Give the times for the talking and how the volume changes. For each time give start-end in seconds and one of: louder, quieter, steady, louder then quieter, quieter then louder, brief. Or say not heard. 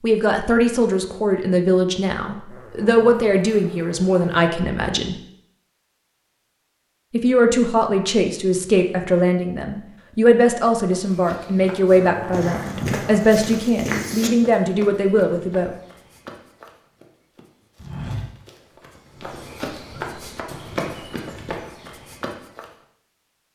0.0-5.2 steady
7.1-15.8 steady.